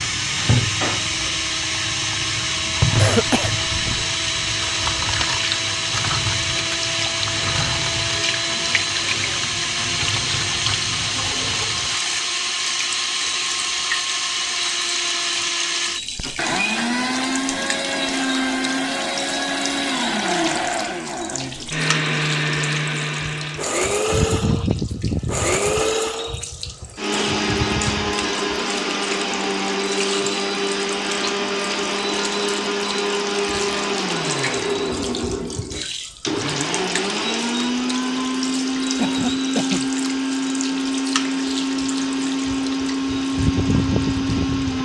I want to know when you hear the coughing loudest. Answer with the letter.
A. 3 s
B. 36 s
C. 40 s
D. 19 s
A.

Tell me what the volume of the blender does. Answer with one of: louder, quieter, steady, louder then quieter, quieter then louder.
steady.